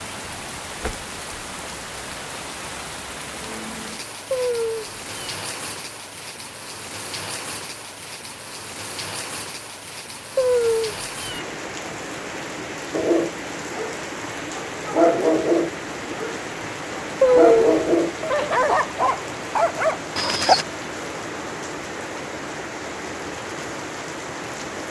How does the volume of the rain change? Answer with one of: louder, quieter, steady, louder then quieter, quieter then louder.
steady.